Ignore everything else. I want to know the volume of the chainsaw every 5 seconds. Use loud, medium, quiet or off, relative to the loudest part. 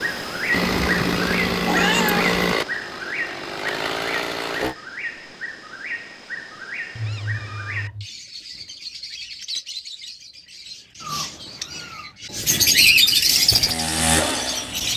loud, off, loud.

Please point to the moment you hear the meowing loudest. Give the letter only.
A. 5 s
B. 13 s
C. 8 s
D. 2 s
D.